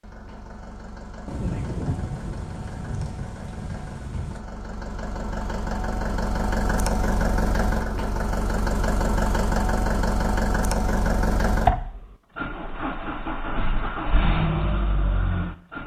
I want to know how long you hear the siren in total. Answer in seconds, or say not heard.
not heard.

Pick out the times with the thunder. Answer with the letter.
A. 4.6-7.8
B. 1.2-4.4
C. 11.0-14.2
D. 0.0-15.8
B.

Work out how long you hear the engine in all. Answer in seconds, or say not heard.
16 s.